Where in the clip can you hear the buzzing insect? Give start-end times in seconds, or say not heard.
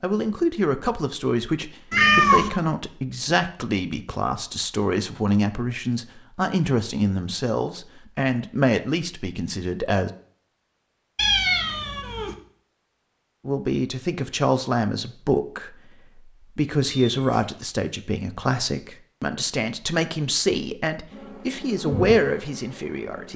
21.1-23.3.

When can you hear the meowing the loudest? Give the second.
2 s.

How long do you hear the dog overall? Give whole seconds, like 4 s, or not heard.
not heard.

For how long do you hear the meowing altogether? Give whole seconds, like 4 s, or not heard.
2 s.